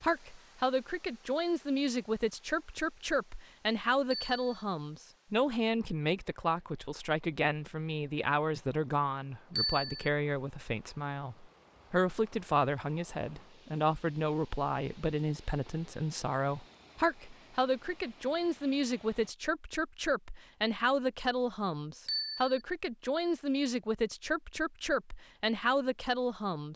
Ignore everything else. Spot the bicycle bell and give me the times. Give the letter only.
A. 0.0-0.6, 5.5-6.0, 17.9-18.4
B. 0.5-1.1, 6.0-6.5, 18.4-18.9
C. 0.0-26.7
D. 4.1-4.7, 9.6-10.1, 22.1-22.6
D.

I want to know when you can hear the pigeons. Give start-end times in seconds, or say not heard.
not heard.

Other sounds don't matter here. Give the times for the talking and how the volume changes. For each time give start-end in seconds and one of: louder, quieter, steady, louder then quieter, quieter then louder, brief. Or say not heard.
0.0-26.7 steady.